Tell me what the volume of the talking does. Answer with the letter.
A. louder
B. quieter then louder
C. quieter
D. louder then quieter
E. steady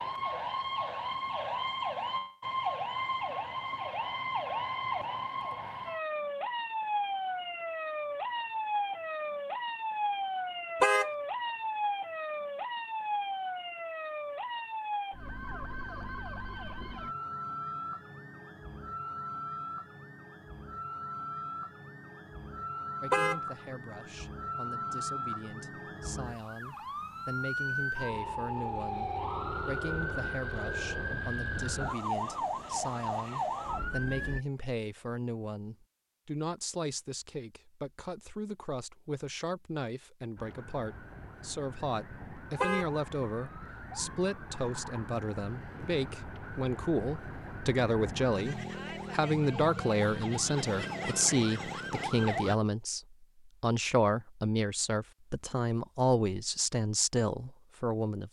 A.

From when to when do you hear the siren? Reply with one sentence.
You can hear the siren from 0.0 to 34.4 s and from 40.4 to 52.5 s.